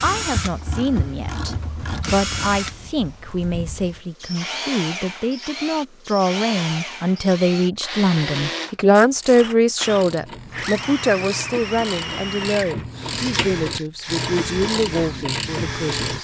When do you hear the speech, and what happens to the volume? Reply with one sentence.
You can hear the speech from 0.0 to 16.1 s, getting louder then quieter.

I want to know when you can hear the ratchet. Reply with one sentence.
You can hear the ratchet from 0.0 to 2.9 s and from 8.8 to 16.1 s.